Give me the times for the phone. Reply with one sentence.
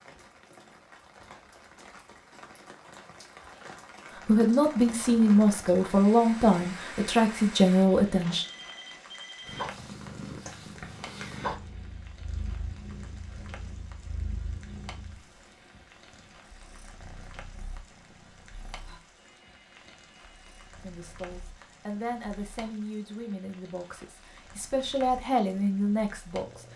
The phone can be heard from 8.2 to 9.7 s and from 19.1 to 20.6 s.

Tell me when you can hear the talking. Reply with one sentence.
The talking can be heard from 4.2 to 8.4 s and from 20.8 to 26.7 s.